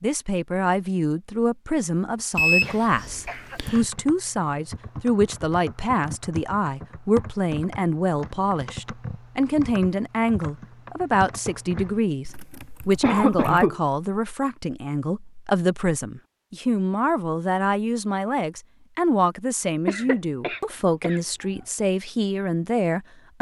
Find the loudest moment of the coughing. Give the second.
13 s.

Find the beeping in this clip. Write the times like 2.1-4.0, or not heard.
2.4-3.9.